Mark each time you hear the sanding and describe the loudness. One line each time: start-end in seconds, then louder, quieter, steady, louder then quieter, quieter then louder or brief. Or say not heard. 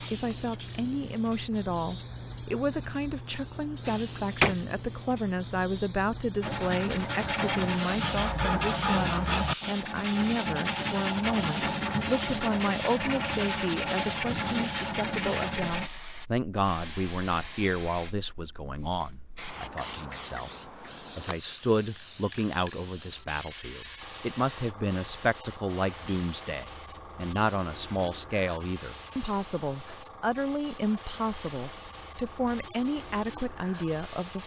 6.4-15.9 steady.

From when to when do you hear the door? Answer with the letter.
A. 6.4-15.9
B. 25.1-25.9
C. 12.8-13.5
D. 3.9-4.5
D.